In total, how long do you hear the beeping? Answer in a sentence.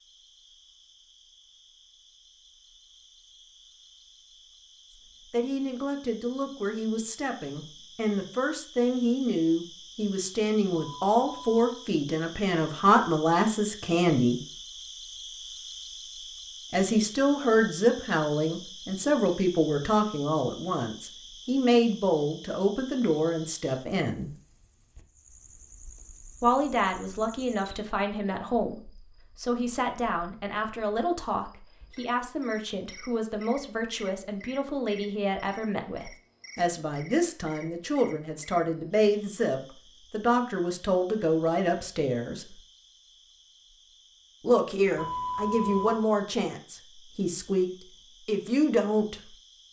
The beeping can be heard for 2 seconds in total.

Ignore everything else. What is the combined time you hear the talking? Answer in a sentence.
You can hear the talking for 38 seconds altogether.